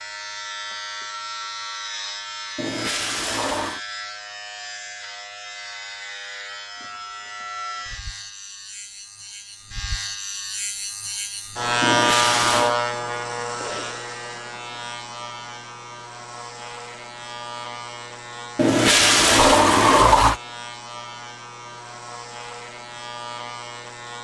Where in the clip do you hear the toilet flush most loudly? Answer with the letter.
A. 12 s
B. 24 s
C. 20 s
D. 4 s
C.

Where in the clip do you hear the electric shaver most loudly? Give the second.
12 s.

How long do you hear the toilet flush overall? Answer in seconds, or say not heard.
4 s.